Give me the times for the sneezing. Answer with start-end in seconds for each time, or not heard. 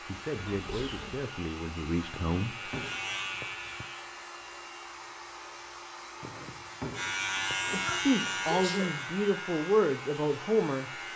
0.3-1.2, 7.8-8.9.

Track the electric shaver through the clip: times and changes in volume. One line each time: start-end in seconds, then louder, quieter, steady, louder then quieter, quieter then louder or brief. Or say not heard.
0.0-4.1 louder
6.9-11.1 quieter.